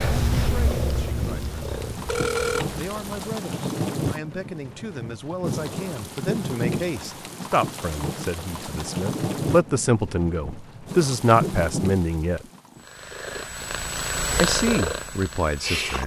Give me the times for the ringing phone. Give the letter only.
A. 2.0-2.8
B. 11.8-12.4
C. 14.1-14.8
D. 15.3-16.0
A.